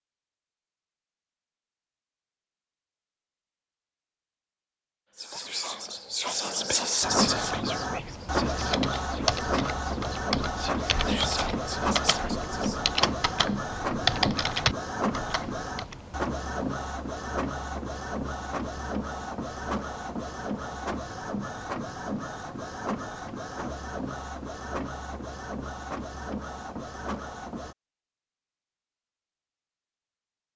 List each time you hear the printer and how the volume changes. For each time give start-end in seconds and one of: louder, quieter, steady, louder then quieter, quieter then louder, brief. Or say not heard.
7.0-27.8 quieter.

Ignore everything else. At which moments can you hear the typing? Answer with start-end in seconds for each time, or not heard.
8.5-15.9.